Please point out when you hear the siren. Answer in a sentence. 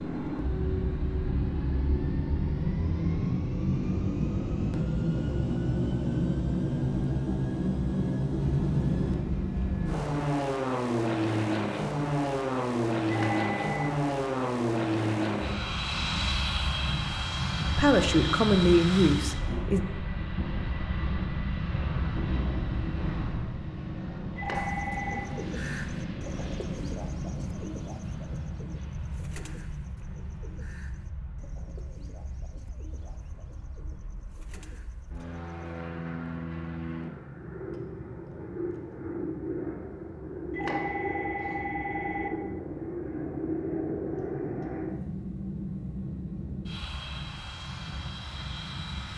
The siren can't be heard in this clip.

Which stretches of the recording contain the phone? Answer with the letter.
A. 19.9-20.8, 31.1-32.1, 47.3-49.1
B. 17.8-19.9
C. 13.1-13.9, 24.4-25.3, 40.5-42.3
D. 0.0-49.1
C.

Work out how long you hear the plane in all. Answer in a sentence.
The plane can be heard for 49 seconds in total.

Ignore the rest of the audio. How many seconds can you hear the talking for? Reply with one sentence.
You can hear the talking for 2 seconds altogether.